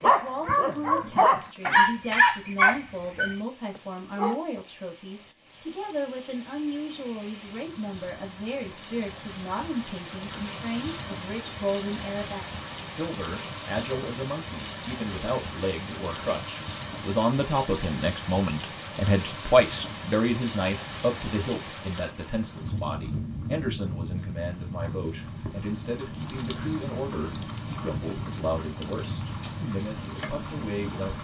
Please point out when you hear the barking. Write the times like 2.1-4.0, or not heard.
0.0-4.4.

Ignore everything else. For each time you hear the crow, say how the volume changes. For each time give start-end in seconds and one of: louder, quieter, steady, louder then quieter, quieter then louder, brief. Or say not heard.
not heard.